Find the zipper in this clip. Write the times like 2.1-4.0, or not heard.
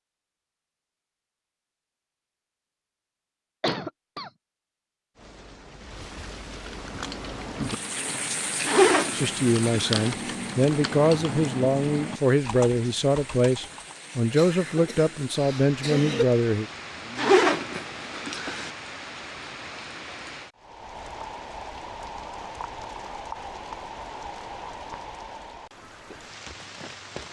8.7-10.1, 17.1-18.7.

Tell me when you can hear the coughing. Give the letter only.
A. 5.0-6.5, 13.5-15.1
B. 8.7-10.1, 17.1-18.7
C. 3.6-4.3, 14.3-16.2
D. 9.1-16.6
C.